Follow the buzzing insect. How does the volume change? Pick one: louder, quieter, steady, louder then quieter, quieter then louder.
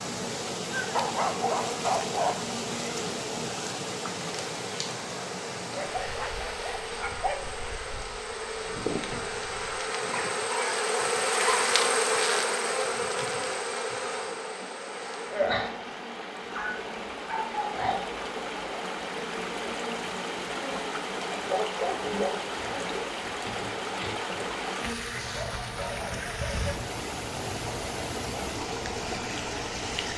louder then quieter.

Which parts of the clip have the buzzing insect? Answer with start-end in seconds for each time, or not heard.
0.0-30.1.